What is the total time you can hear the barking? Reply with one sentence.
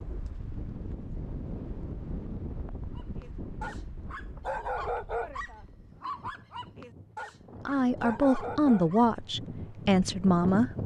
You can hear the barking for 6 seconds altogether.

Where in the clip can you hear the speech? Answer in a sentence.
You can hear the speech from 7.7 to 10.7 s.